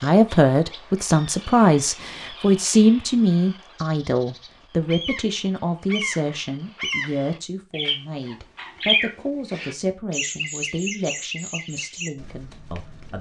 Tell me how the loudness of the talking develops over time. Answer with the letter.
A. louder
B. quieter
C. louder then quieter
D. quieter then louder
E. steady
B.